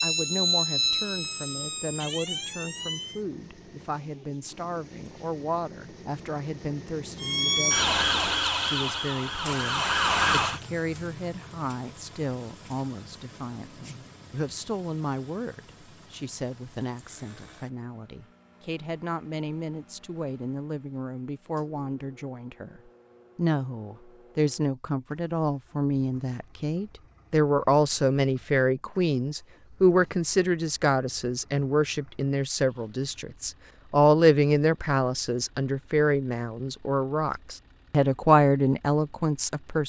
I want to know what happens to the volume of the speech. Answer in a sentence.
The volume of the speech goes up.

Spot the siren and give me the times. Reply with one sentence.
The siren can be heard from 0.0 to 3.2 s and from 7.2 to 10.6 s.